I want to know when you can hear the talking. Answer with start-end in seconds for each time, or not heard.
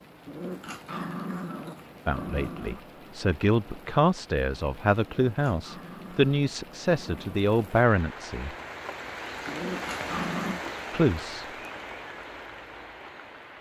2.0-8.6, 10.9-11.4.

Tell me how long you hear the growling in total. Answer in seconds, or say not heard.
6 s.